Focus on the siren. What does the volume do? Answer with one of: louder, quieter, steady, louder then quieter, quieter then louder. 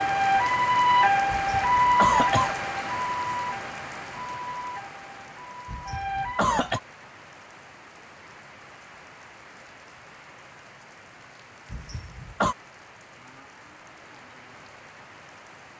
quieter.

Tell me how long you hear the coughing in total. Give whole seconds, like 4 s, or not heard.
3 s.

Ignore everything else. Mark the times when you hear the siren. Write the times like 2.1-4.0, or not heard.
0.0-6.5.